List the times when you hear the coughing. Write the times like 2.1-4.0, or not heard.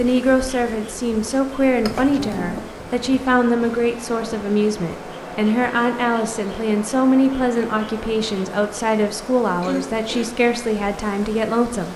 1.8-2.6, 9.6-10.3.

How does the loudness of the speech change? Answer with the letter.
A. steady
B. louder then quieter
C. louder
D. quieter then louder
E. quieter
A.